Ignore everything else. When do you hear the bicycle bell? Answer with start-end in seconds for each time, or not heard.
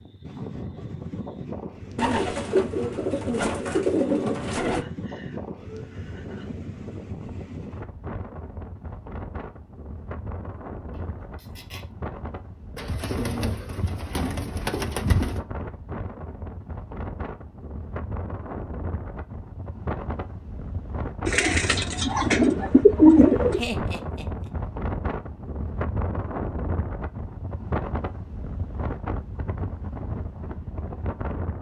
not heard.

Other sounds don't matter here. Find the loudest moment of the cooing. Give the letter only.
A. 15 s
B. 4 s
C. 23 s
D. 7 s
C.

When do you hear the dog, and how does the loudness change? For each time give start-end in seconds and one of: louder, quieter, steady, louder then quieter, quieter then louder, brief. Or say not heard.
not heard.